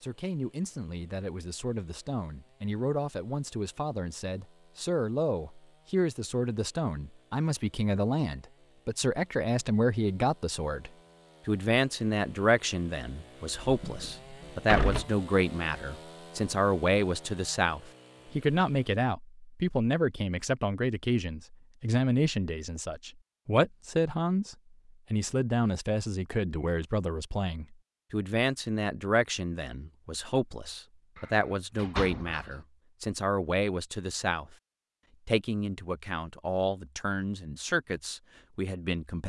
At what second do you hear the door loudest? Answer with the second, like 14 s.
15 s.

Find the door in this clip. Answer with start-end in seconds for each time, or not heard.
13.6-15.1, 31.1-32.5.